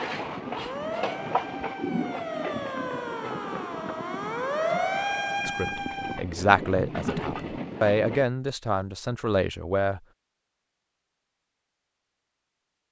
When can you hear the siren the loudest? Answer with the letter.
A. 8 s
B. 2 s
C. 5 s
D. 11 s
C.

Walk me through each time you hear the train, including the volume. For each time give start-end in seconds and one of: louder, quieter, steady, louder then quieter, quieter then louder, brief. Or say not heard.
0.0-8.2 quieter then louder.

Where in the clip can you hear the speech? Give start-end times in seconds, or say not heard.
5.5-10.0.